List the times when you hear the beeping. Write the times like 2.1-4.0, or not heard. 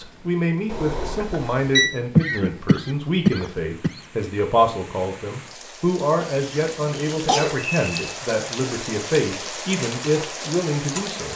0.7-1.9, 7.3-8.1.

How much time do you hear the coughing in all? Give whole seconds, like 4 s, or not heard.
3 s.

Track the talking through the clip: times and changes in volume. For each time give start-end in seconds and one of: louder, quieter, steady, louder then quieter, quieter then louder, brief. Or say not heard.
0.0-11.3 steady.